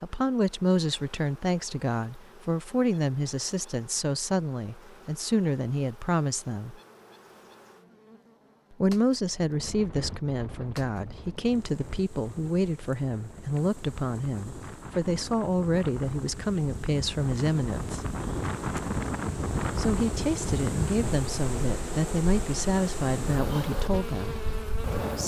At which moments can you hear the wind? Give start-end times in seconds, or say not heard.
9.3-25.2.